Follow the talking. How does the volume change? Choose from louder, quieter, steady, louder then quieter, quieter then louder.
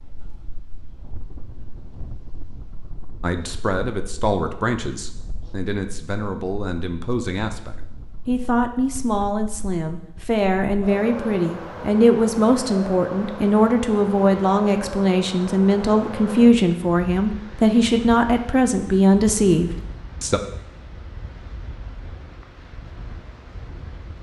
louder.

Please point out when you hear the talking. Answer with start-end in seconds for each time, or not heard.
3.2-20.4.